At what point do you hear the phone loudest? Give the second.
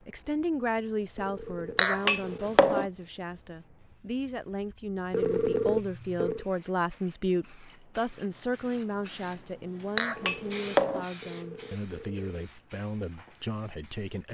6 s.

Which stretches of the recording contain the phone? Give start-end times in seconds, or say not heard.
1.1-2.5, 5.1-6.5, 10.2-12.4.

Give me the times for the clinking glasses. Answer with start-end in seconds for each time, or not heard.
1.8-2.9, 9.9-11.1.